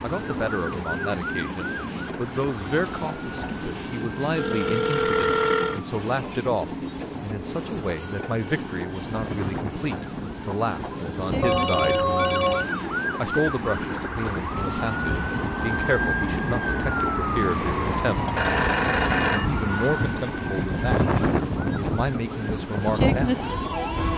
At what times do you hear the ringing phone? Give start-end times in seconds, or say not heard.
4.3-5.8, 11.4-12.7, 17.6-19.4.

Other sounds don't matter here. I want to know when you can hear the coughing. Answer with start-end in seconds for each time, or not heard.
not heard.